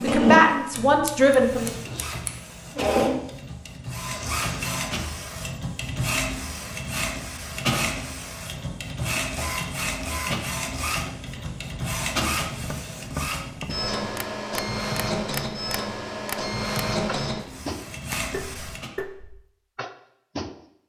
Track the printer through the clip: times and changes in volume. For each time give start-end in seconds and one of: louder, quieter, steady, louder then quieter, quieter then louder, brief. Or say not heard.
0.0-18.9 steady.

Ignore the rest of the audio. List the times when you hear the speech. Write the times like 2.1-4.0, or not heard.
0.0-1.7.